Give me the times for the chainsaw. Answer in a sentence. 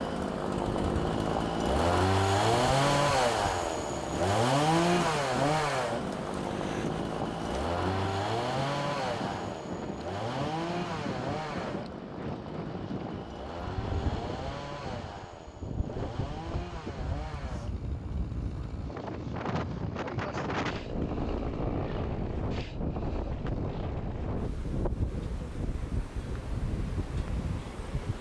The chainsaw can be heard from 0.0 to 24.1 s.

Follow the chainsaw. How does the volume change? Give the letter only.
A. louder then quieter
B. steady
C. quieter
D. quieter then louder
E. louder
C.